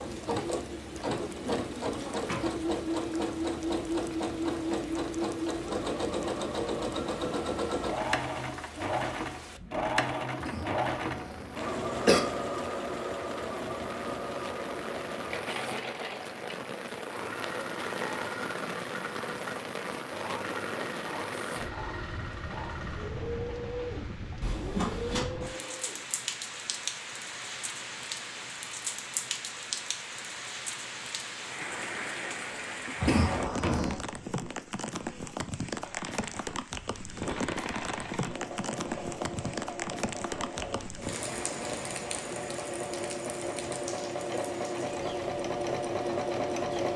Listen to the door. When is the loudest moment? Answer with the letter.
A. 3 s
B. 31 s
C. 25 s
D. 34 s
C.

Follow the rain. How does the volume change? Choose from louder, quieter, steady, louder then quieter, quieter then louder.
louder.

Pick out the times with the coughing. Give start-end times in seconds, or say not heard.
10.4-12.2, 33.0-34.0.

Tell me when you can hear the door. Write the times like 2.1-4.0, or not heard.
1.9-2.5, 24.4-25.2, 33.5-33.9.